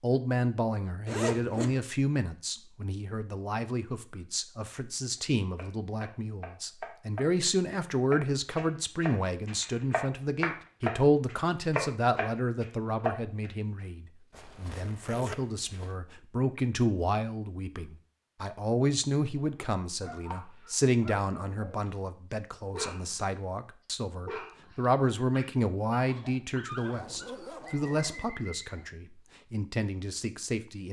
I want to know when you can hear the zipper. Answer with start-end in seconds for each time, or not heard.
1.1-1.9, 14.3-15.9, 26.8-28.3.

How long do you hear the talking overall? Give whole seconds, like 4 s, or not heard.
31 s.